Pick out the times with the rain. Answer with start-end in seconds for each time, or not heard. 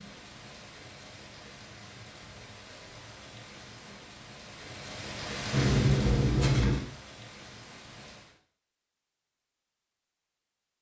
0.0-8.4.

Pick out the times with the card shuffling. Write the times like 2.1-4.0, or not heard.
5.5-6.8.